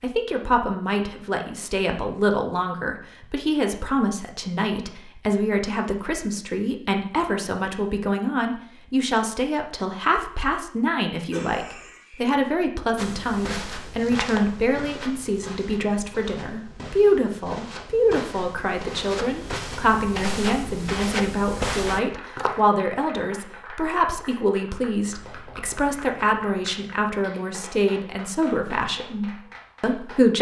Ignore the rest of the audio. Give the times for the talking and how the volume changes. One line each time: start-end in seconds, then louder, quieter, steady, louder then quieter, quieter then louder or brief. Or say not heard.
0.0-30.3 steady.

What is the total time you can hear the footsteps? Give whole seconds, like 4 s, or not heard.
10 s.